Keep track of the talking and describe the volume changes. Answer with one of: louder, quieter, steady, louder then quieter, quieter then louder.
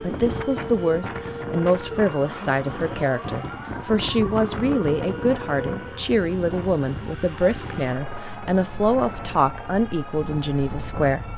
steady.